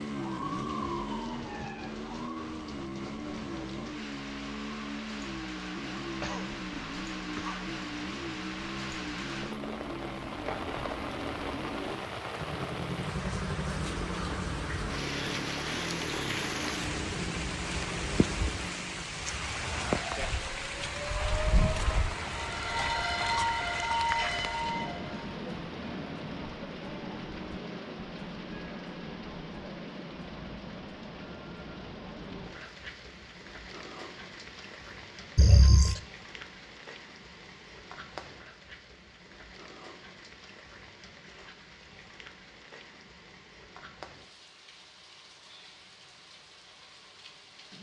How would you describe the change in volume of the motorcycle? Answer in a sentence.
The loudness of the motorcycle stays about the same.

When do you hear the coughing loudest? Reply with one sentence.
The loudest moment of the coughing is at 36 seconds.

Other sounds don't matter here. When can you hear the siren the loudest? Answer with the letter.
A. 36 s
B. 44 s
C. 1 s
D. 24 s
D.